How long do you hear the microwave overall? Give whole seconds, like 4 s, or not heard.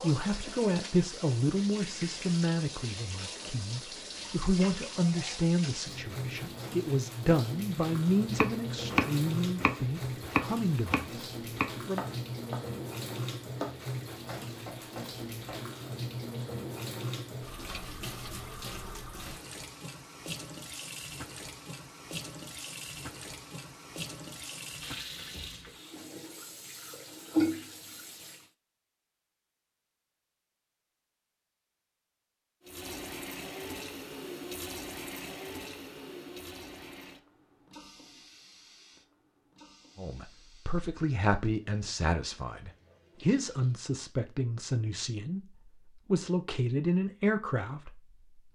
not heard.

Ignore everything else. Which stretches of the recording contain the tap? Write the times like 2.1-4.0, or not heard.
0.0-28.5, 32.6-43.9.